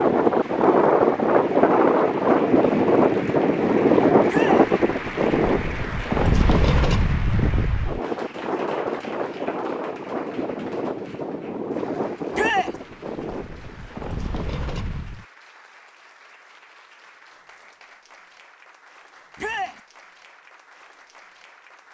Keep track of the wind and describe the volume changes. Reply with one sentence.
The loudness of the wind goes down.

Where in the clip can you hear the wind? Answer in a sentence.
You can hear the wind from 0.0 to 15.2 s.